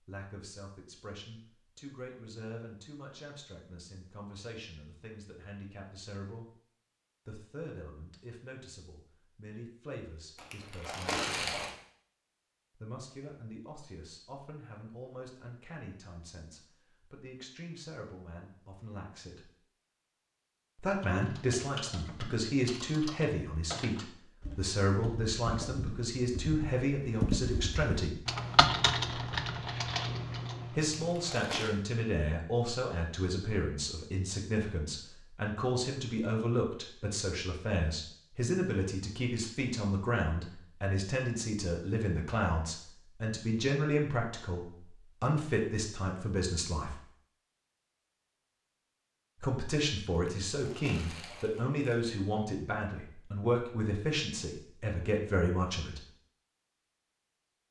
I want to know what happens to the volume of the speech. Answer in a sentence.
The volume of the speech goes up.